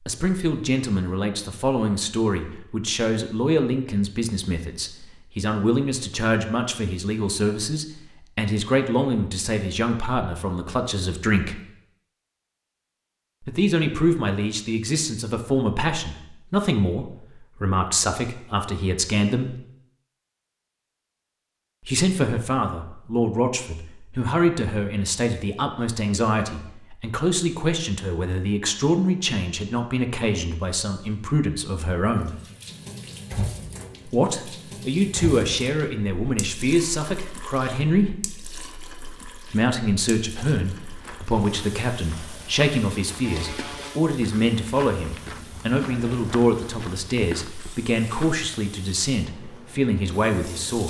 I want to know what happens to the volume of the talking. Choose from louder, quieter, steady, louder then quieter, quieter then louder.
steady.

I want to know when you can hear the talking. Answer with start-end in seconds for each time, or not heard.
0.1-11.6, 13.4-19.6, 21.9-32.4, 34.0-38.1, 39.5-50.8.